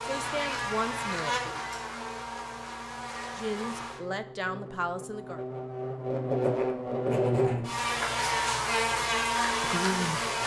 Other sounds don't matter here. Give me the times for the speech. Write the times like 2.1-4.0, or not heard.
0.0-1.4, 3.4-5.4, 9.6-10.2.